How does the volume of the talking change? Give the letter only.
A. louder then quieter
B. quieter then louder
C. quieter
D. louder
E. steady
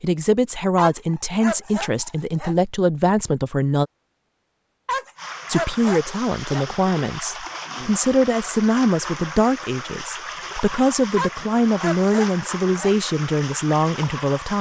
E.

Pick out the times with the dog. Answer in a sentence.
You can hear the dog from 0.8 to 2.5 s, from 4.8 to 6.7 s and from 11.2 to 12.9 s.